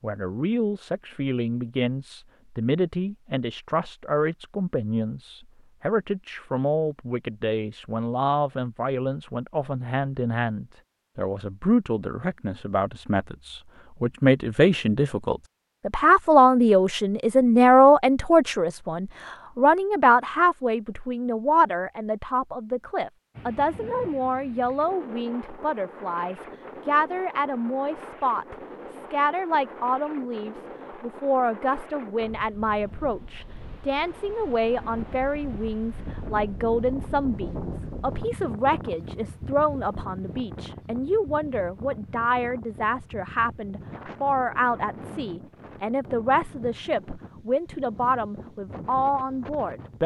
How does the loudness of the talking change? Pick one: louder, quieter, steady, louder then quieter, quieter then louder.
louder then quieter.